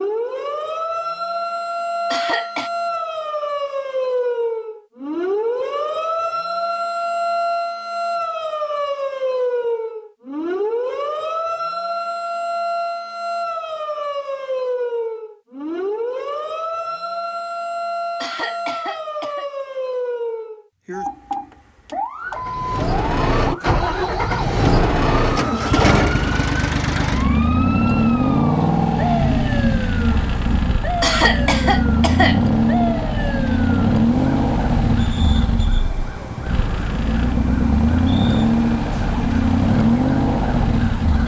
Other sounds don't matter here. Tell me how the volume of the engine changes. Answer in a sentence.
The loudness of the engine stays about the same.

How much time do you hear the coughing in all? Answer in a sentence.
The coughing can be heard for 3 seconds in total.